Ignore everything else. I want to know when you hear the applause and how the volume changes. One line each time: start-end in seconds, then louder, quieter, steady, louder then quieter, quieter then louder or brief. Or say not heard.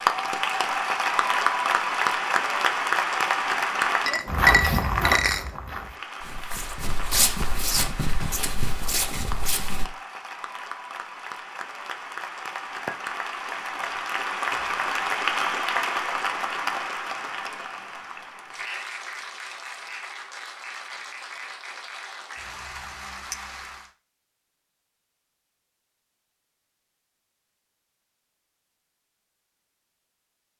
0.0-4.2 steady
5.8-23.9 louder then quieter.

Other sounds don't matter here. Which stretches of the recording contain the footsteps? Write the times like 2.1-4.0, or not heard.
4.2-9.8.